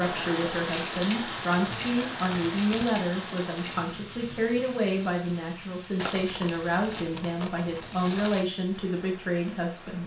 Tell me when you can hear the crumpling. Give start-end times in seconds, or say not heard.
1.5-3.0, 6.0-8.4.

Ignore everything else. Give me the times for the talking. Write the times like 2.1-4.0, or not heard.
0.0-10.0.